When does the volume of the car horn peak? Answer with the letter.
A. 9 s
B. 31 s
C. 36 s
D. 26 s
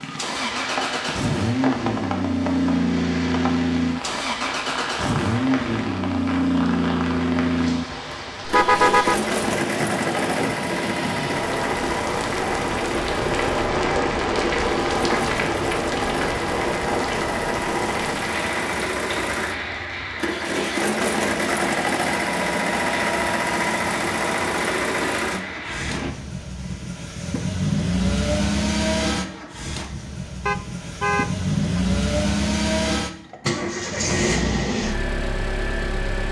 A.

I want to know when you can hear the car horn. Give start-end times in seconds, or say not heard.
8.4-9.2, 30.4-31.8.